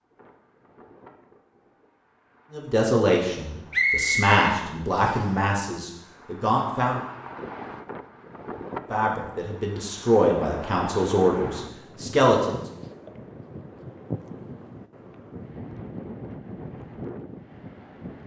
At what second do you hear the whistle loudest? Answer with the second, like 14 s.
4 s.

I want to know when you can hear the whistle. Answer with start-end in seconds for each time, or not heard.
3.7-5.3.